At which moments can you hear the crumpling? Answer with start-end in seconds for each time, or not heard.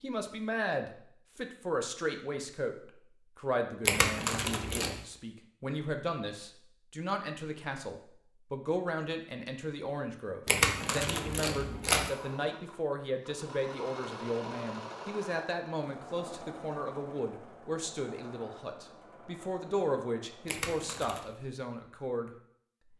3.9-5.0, 10.4-12.1, 20.4-21.3.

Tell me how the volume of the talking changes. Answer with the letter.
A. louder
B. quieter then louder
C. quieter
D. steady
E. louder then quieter
D.